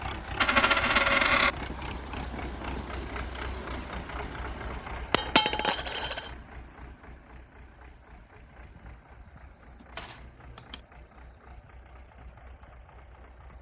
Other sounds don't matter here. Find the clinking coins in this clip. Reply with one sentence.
The clinking coins can be heard from 0.3 to 1.5 s, from 5.1 to 6.3 s and from 9.9 to 10.8 s.